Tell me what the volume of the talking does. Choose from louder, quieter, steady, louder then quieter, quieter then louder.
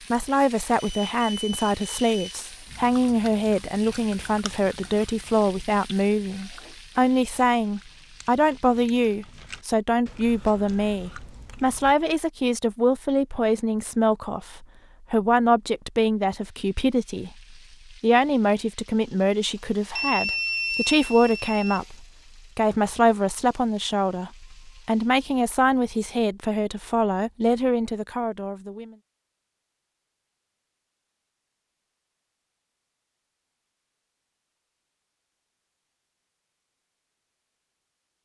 steady.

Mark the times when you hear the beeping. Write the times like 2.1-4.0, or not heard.
0.8-2.4, 19.9-21.8.